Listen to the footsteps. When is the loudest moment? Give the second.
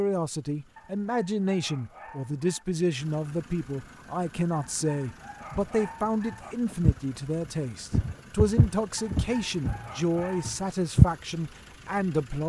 11 s.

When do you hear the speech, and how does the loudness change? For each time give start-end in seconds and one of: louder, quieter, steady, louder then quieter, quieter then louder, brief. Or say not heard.
0.0-12.4 steady.